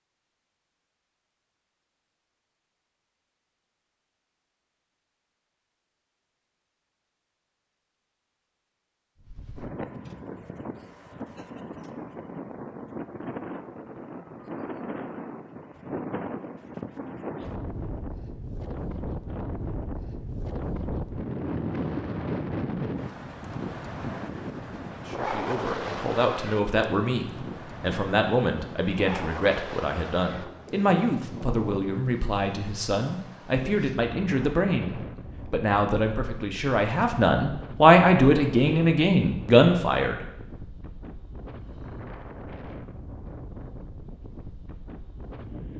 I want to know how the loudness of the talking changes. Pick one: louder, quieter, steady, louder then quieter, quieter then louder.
louder.